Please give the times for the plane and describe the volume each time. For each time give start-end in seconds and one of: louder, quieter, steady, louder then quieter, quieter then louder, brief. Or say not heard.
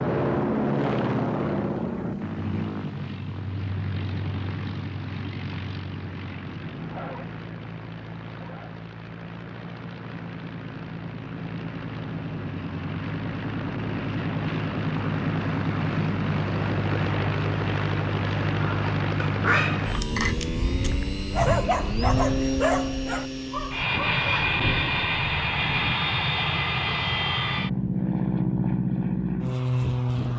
0.0-30.3 quieter then louder.